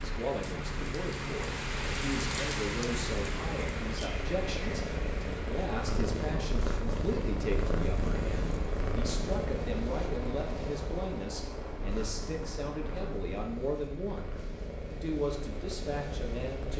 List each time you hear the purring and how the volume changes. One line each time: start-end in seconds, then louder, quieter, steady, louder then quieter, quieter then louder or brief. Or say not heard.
0.0-16.7 louder then quieter.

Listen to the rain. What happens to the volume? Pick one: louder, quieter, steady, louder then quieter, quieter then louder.
quieter.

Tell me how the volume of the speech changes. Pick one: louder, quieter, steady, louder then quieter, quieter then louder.
steady.